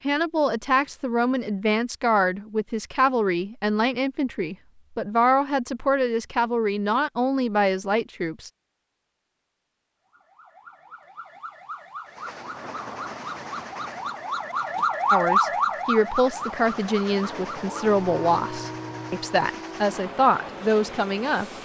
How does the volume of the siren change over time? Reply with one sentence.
The loudness of the siren goes up, then down.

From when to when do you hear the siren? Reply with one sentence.
The siren can be heard from 10.1 to 19.5 s.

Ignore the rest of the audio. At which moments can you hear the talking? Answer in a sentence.
The talking can be heard from 0.1 to 8.5 s and from 15.1 to 21.5 s.